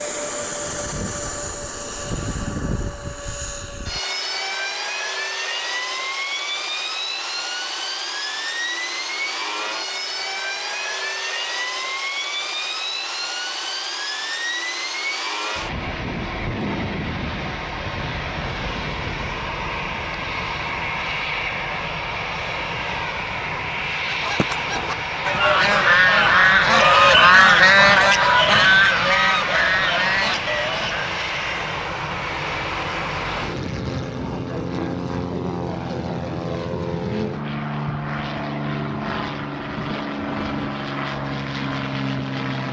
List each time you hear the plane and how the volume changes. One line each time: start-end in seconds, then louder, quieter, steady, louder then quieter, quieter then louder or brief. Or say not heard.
0.0-42.6 steady.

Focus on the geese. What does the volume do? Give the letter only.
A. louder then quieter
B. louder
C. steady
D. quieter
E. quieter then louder
A.